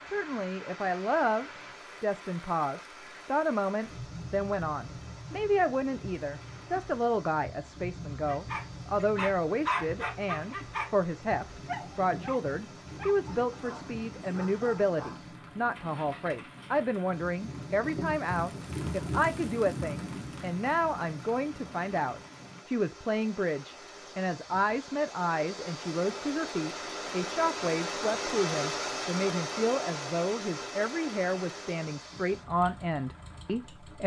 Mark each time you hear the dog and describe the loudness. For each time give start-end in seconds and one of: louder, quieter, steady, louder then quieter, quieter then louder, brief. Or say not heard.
8.1-15.2 quieter.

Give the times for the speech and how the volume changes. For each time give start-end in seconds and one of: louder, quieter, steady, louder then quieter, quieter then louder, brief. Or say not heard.
0.0-34.0 steady.